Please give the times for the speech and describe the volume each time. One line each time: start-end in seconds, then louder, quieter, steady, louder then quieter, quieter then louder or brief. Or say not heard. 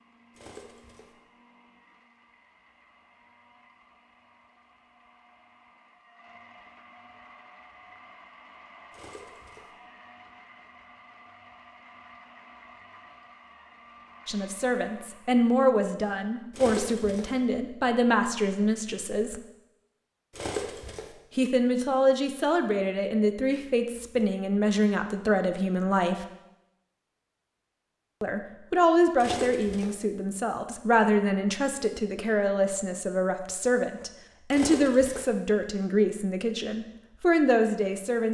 14.2-19.4 steady
21.4-26.2 steady
28.2-38.2 steady.